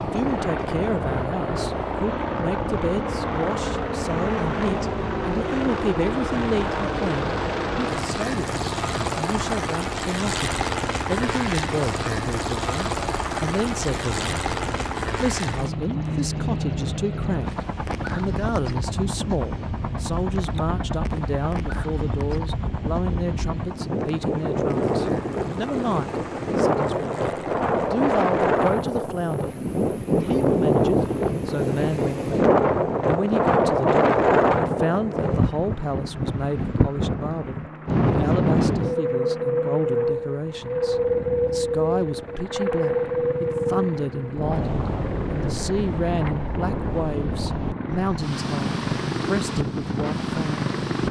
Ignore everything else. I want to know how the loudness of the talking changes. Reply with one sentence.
The loudness of the talking stays about the same.